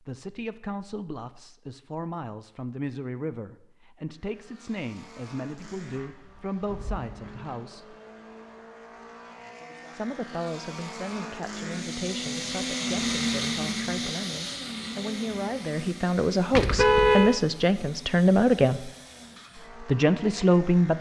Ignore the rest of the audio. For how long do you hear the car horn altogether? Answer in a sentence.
You can hear the car horn for 2 seconds altogether.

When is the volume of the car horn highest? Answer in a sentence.
The loudest moment of the car horn is at 17 seconds.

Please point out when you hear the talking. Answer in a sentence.
You can hear the talking from 0.0 to 8.0 s, from 9.9 to 18.9 s and from 19.8 to 20.9 s.